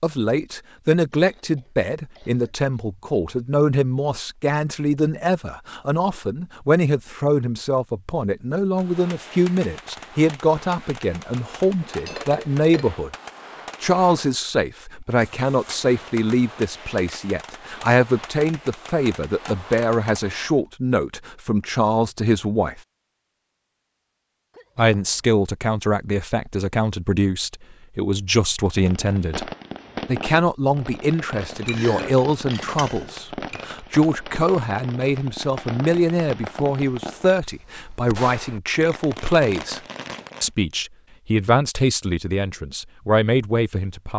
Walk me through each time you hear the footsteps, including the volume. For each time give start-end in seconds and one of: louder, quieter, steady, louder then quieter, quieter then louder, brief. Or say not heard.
not heard.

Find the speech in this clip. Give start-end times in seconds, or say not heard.
0.0-13.1, 13.8-22.8, 24.8-39.8, 40.4-44.1.